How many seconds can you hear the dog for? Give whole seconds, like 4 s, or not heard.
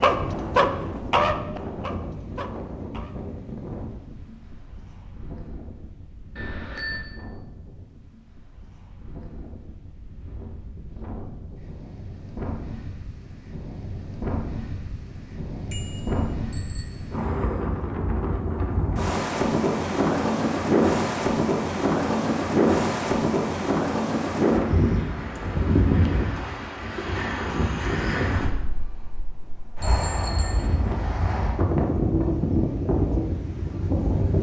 3 s.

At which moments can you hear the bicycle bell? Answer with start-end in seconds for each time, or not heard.
6.3-7.0, 15.7-17.0, 29.8-30.6.